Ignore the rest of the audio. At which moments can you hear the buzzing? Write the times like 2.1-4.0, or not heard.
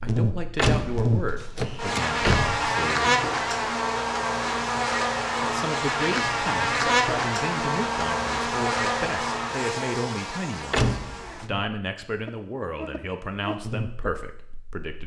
0.0-14.8.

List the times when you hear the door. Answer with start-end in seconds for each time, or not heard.
0.6-2.6, 10.7-11.4.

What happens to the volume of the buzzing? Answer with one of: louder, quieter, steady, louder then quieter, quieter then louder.
quieter.